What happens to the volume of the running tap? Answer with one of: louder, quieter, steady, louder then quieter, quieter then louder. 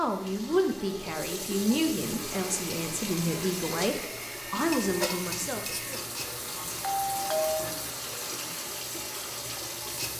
steady.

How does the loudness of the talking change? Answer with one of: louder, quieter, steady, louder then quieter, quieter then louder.
steady.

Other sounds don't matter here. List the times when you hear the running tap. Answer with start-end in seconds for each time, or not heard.
0.0-10.1.